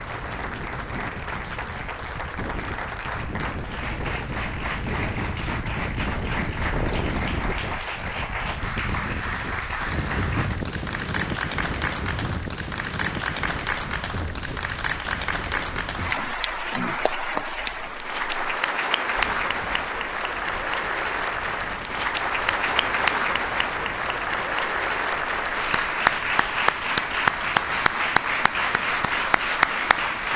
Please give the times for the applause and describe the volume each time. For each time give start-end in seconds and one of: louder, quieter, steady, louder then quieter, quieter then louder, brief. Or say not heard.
0.0-30.3 louder.